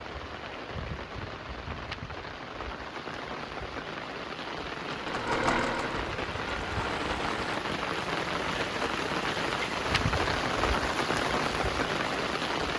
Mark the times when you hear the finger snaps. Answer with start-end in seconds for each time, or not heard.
not heard.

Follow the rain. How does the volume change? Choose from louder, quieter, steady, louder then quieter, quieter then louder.
louder.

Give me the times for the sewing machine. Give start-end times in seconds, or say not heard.
4.8-7.6.